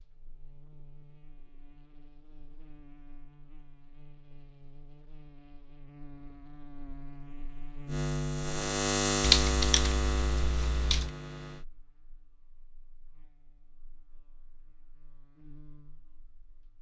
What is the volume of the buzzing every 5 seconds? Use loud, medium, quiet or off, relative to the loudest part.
quiet, loud, medium, quiet.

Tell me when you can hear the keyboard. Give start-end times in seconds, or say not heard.
9.2-11.1.